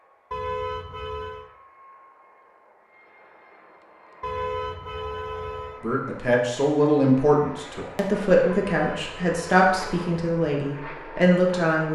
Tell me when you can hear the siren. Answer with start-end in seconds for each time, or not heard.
not heard.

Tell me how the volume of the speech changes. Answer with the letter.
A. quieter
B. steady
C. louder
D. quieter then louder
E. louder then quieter
B.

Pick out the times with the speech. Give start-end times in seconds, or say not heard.
5.8-11.9.